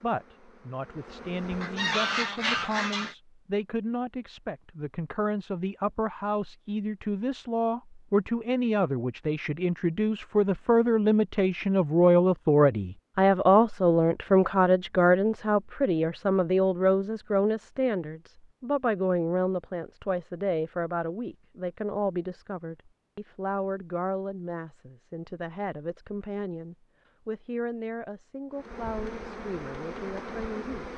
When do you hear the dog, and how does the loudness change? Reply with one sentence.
The dog can't be heard in this clip.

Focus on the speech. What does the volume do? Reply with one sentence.
The volume of the speech goes up, then down.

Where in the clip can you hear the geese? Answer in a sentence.
The geese can be heard from 1.6 to 3.1 s.